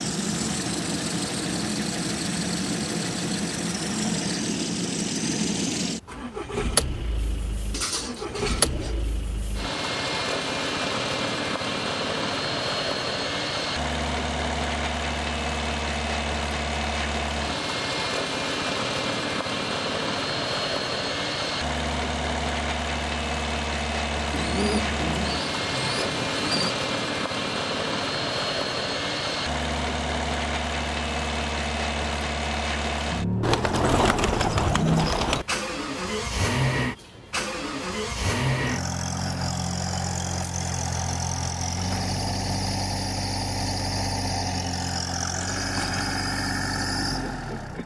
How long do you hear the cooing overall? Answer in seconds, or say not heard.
6 s.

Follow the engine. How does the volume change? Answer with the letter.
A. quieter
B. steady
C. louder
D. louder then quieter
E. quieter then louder
B.